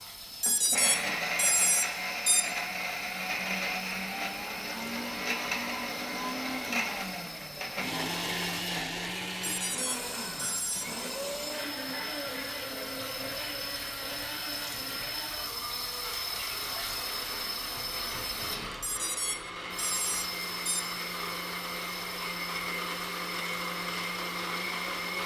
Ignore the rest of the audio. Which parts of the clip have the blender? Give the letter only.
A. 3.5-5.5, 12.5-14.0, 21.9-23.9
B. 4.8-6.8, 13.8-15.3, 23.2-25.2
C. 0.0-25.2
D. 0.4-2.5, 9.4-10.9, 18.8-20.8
C.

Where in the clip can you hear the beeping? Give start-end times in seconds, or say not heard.
0.4-2.5, 9.4-10.9, 18.8-20.8.